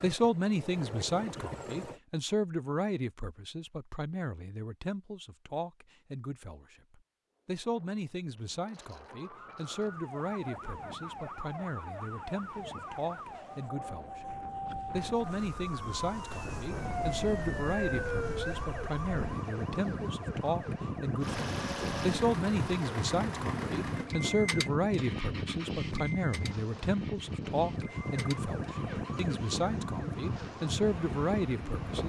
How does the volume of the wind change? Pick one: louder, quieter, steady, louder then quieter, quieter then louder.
louder.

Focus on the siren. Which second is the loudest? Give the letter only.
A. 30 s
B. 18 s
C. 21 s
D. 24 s
B.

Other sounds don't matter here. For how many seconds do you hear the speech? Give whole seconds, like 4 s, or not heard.
32 s.